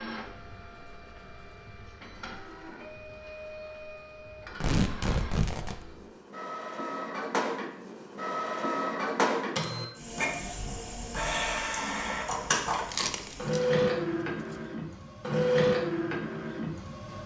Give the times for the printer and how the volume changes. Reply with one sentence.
You can hear the printer from 0.0 to 17.2 s, getting louder.